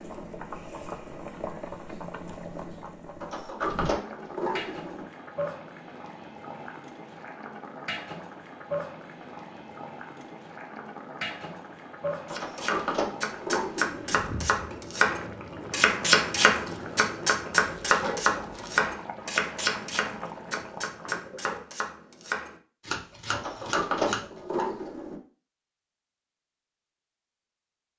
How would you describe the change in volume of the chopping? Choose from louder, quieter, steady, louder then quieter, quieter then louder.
louder then quieter.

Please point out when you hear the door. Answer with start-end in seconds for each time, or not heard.
3.2-5.0, 12.2-14.2, 23.3-25.1.